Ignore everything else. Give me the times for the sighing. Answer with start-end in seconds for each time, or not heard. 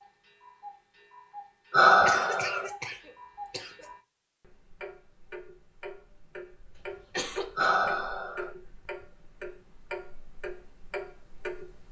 1.7-2.7, 7.5-8.5.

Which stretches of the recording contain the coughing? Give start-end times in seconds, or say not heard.
2.0-3.9, 6.8-7.8.